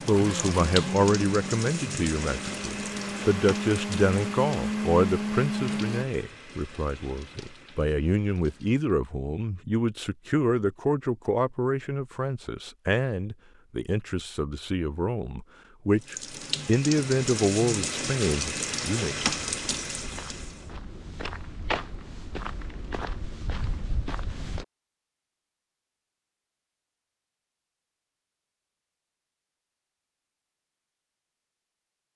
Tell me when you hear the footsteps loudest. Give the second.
22 s.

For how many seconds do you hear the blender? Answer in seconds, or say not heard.
6 s.